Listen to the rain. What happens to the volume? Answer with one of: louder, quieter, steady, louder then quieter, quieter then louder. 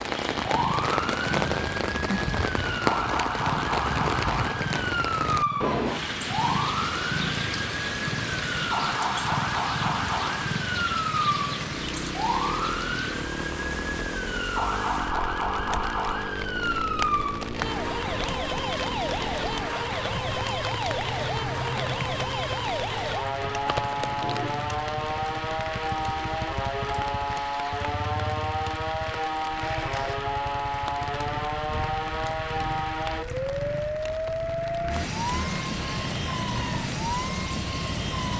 quieter.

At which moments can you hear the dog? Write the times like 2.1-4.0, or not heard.
not heard.